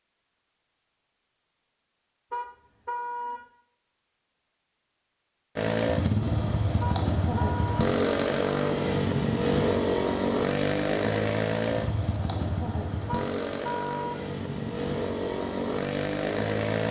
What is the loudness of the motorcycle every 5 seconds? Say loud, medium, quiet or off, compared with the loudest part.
off, loud, loud, loud.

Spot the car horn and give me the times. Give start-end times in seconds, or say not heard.
2.3-3.4, 6.8-7.9, 13.1-14.2.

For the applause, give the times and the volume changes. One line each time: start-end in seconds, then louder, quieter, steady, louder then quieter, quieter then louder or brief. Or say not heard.
not heard.